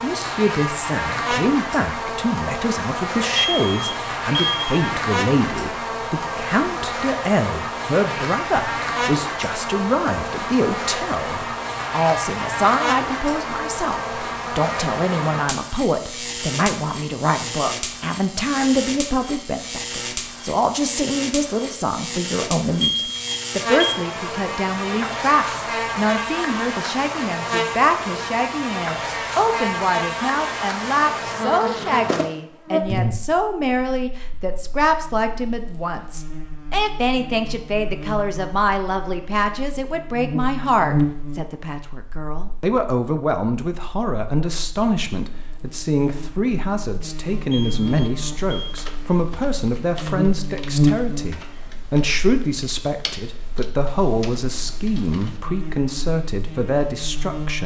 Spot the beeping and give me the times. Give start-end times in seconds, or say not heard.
3.4-4.9, 22.8-24.0, 47.5-48.9.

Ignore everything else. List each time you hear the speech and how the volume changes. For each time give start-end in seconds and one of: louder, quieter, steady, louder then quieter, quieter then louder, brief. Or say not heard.
0.0-57.6 steady.